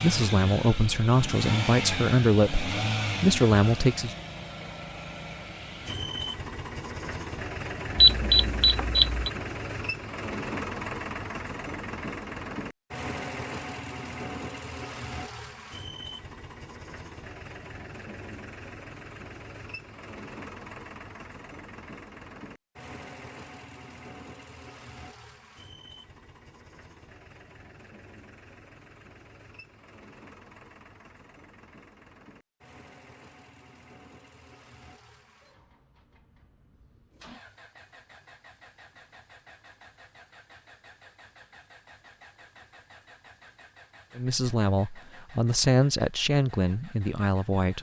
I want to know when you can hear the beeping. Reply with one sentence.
You can hear the beeping from 8.0 to 9.3 s.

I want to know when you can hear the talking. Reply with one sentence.
You can hear the talking from 0.0 to 4.2 s and from 44.1 to 47.7 s.